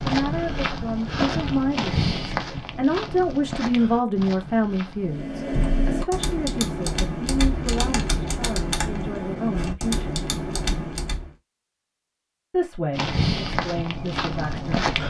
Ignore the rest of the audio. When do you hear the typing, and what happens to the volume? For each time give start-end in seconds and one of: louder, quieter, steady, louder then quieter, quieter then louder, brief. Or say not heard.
5.0-11.3 steady.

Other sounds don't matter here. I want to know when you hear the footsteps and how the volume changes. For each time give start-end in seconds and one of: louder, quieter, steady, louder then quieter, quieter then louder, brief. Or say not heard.
0.0-5.2 quieter
12.9-15.0 brief.